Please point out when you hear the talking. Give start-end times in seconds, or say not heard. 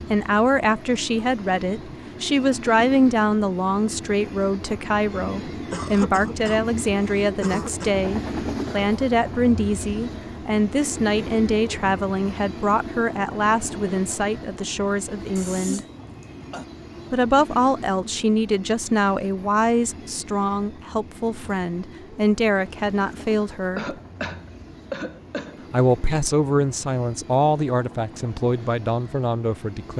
0.1-15.8, 17.1-23.9, 25.7-29.9.